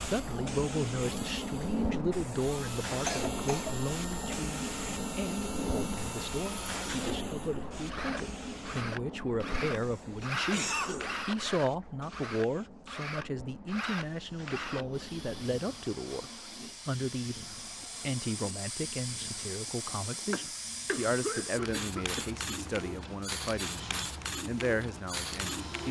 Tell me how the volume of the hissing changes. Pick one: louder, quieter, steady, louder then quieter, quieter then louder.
quieter then louder.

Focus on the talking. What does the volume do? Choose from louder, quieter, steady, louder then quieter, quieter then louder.
steady.